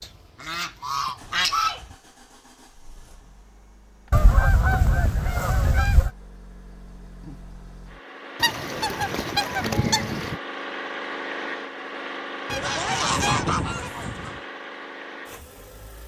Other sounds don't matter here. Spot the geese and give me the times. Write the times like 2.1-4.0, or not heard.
0.0-1.9, 4.1-6.1, 8.3-10.4, 12.4-14.4.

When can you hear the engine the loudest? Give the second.
11 s.